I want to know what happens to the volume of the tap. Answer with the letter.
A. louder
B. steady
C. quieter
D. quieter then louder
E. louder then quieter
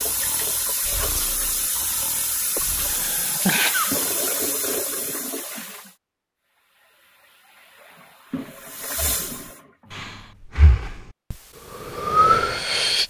D.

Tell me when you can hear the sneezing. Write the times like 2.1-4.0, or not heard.
2.5-4.0.